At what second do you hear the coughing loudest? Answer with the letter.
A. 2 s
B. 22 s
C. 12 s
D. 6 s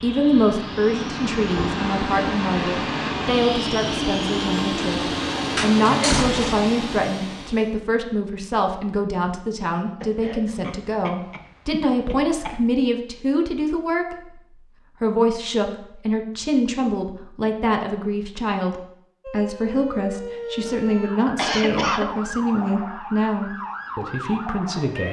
B.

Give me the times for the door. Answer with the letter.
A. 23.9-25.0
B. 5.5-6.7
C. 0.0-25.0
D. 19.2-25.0
B.